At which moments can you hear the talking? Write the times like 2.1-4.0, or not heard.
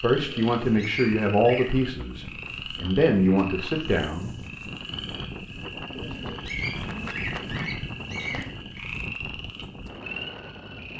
0.0-4.3.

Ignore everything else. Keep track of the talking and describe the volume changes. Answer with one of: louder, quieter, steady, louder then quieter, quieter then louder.
quieter then louder.